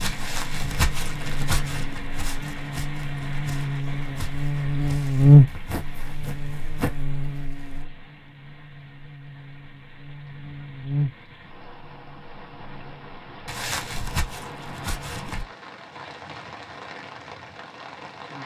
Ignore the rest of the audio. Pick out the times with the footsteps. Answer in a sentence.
The footsteps can be heard from 0.0 to 7.0 s and from 13.4 to 15.4 s.